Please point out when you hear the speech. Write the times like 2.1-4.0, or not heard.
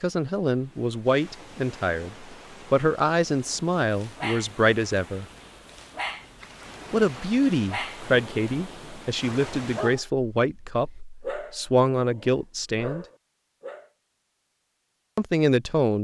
0.0-5.2, 6.9-13.1, 15.2-15.9.